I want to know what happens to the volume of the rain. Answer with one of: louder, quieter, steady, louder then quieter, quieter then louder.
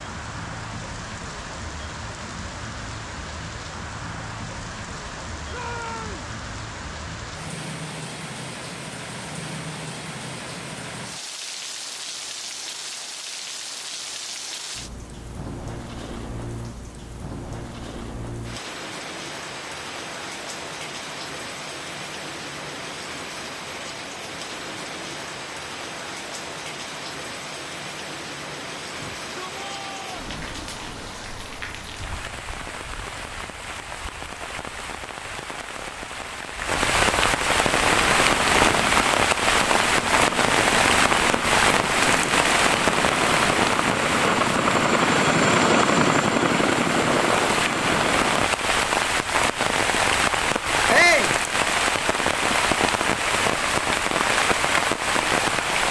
louder.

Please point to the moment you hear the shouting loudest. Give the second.
51 s.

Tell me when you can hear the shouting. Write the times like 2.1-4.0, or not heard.
5.5-6.2, 28.9-30.1, 50.9-51.4.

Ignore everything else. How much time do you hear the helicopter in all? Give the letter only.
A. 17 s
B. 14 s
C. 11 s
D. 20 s
C.